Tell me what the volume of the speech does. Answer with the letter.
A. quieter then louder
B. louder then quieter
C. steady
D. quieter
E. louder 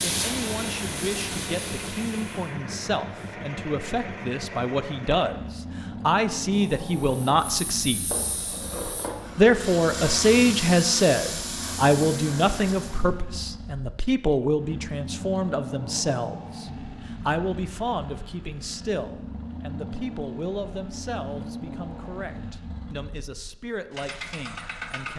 B.